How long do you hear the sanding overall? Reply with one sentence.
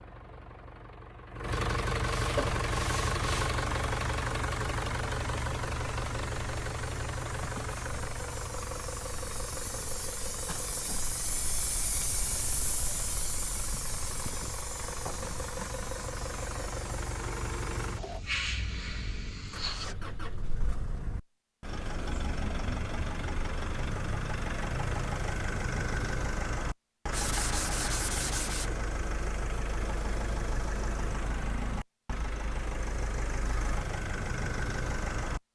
You can hear the sanding for 3 seconds altogether.